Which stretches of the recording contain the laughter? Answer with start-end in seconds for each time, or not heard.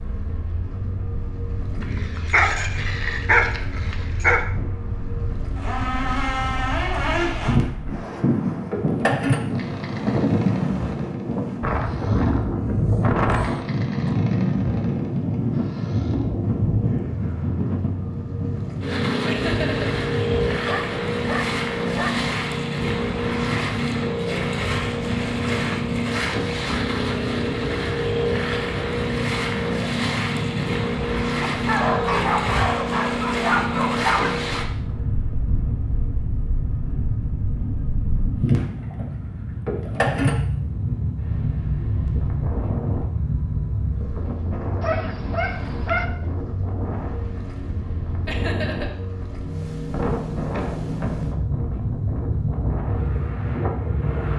19.2-19.9, 48.2-48.9.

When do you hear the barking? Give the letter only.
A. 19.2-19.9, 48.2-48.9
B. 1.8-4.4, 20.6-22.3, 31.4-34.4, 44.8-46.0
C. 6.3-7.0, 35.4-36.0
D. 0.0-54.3
B.